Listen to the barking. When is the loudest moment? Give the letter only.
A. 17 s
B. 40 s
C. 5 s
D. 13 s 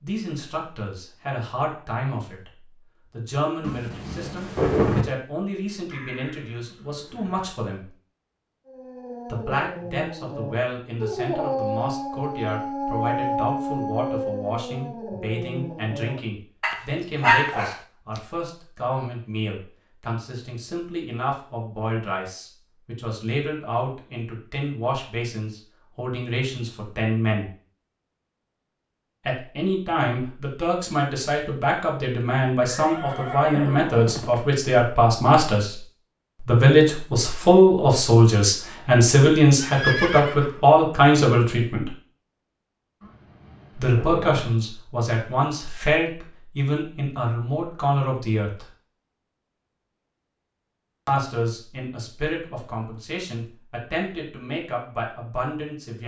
A.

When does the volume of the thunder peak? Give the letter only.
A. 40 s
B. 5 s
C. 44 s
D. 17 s
B.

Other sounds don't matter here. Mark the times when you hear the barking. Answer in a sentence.
The barking can be heard from 8.7 to 18.2 s.